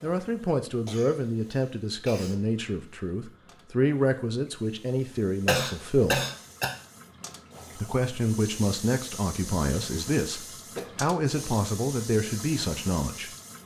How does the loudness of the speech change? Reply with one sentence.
The volume of the speech stays about the same.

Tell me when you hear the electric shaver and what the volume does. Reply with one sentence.
You can't hear the electric shaver here.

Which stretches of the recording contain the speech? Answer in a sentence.
You can hear the speech from 0.0 to 6.2 s and from 7.8 to 13.3 s.